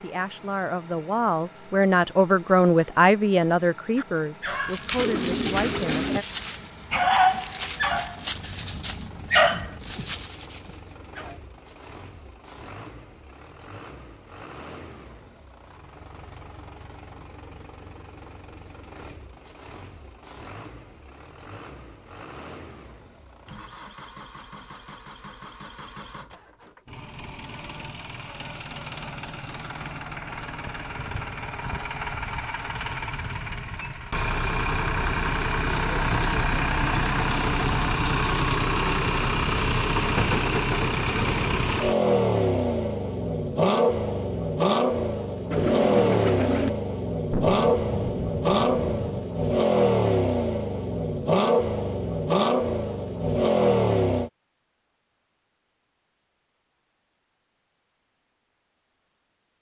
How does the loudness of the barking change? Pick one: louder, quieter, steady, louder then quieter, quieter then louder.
louder then quieter.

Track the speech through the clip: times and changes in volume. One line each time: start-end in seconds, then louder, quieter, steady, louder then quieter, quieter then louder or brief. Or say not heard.
0.0-6.2 louder then quieter.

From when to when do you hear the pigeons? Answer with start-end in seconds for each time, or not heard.
5.0-6.2, 45.5-46.7.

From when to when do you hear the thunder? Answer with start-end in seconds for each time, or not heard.
47.3-49.2.